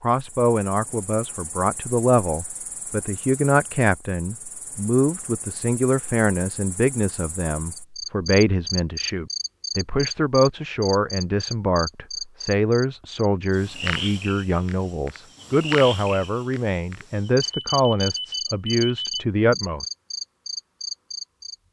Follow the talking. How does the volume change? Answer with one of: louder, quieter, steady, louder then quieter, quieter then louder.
steady.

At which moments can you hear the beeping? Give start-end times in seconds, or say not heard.
17.4-19.2.